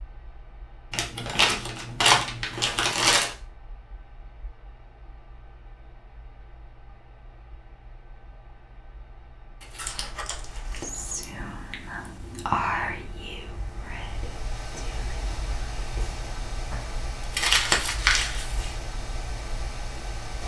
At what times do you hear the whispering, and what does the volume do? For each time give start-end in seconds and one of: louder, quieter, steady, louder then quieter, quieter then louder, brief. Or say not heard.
10.7-17.0 louder then quieter.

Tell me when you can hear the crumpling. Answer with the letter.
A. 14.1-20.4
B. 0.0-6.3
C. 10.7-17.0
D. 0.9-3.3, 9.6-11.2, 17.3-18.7
D.